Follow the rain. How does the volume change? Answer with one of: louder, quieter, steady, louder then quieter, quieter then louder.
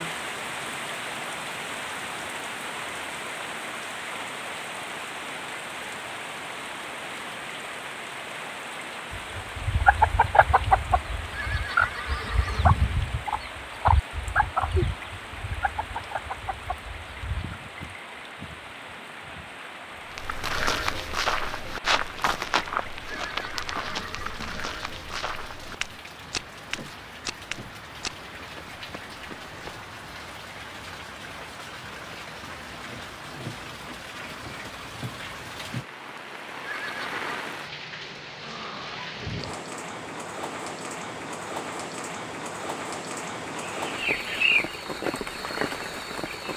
quieter then louder.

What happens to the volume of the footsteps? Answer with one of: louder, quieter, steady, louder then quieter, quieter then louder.
quieter.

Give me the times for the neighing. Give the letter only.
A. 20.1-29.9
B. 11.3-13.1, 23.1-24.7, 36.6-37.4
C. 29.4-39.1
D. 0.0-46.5
B.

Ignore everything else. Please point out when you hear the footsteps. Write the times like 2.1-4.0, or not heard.
20.1-29.9.